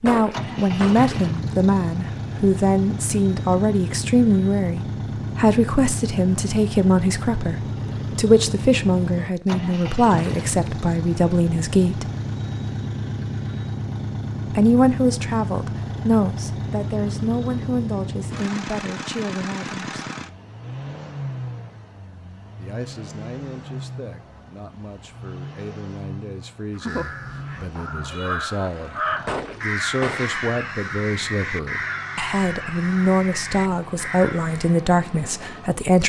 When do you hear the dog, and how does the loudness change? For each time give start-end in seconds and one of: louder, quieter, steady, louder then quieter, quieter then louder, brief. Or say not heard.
not heard.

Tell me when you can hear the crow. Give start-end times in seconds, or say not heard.
26.7-34.8.